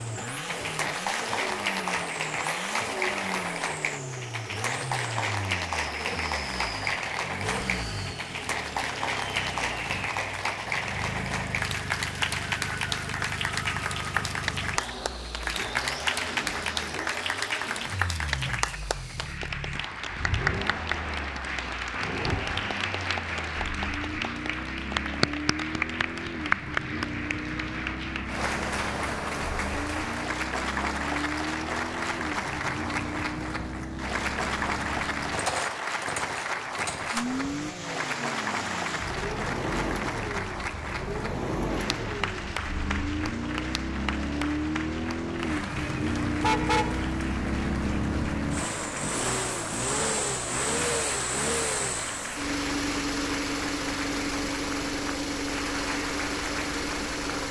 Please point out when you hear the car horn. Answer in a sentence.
The car horn can be heard from 46.4 to 47.1 s.